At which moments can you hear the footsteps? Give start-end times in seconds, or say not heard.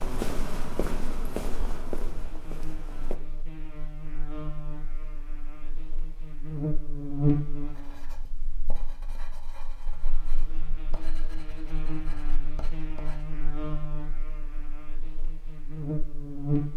0.0-3.1.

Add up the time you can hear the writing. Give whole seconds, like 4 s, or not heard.
6 s.